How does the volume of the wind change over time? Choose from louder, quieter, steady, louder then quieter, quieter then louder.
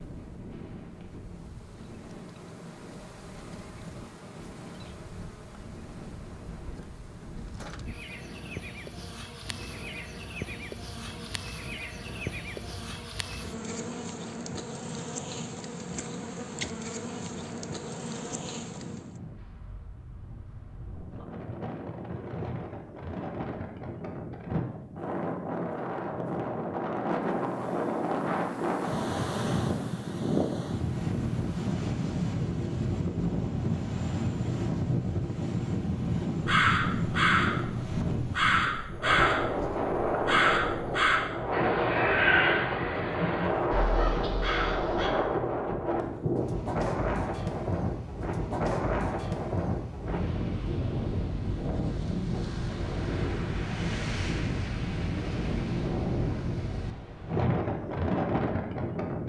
louder.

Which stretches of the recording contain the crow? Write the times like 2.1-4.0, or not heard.
36.4-45.1.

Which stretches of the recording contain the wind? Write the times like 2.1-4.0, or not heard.
0.0-59.2.